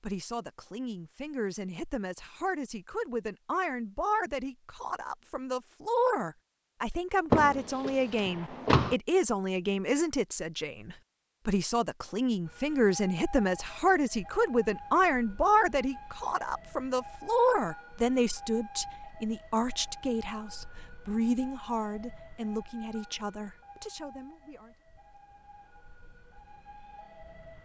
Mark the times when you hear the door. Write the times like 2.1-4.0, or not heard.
7.3-8.9.